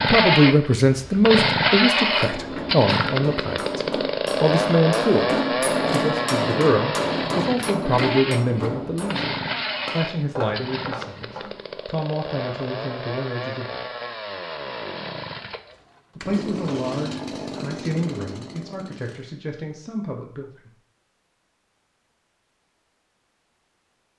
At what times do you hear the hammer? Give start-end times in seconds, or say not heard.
2.0-11.7.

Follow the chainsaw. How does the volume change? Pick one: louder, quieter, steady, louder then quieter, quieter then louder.
quieter.